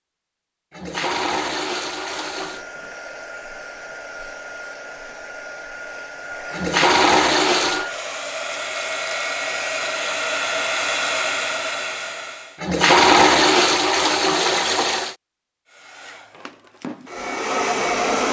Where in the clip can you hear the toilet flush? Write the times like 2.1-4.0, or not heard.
0.7-2.6, 6.5-7.9, 12.6-15.2.